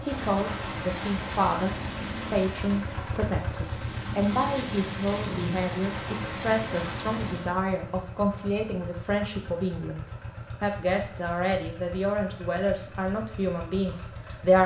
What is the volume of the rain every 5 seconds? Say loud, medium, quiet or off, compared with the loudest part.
loud, loud, off.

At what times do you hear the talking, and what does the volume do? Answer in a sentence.
The talking can be heard briefly from 0.0 to 1.7 s; and from 2.3 to 14.6 s, at a steady volume.